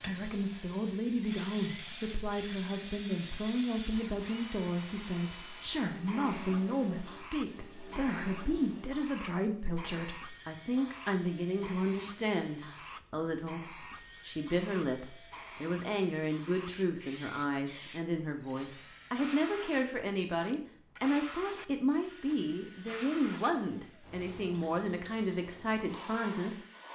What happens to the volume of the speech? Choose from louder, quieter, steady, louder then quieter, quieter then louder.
steady.